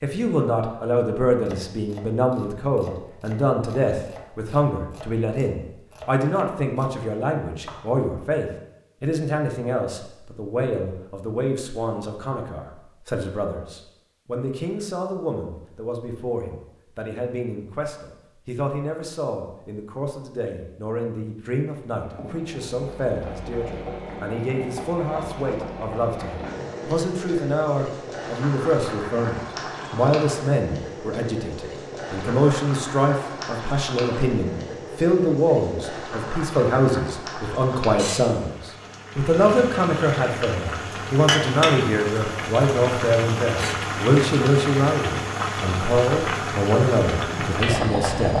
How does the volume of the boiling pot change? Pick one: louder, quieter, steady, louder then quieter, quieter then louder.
louder.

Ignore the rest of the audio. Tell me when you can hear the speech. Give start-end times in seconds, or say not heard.
0.0-48.3.